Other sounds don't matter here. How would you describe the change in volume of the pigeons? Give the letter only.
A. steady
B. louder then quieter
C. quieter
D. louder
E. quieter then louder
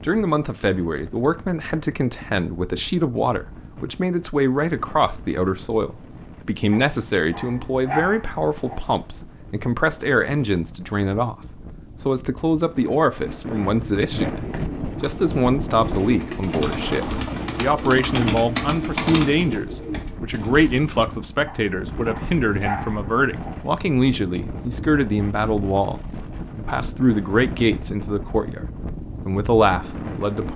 B.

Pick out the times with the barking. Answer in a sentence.
You can hear the barking from 6.7 to 8.9 s and from 21.4 to 23.7 s.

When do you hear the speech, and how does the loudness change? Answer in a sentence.
You can hear the speech from 0.0 to 28.6 s, at a steady volume; and briefly from 29.2 to 30.5 s.